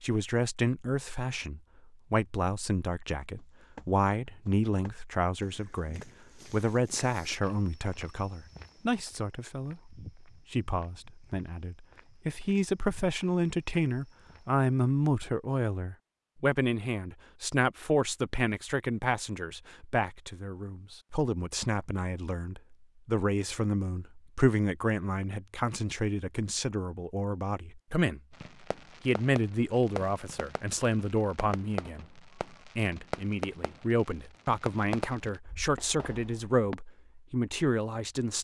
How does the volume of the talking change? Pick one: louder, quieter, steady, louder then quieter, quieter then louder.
steady.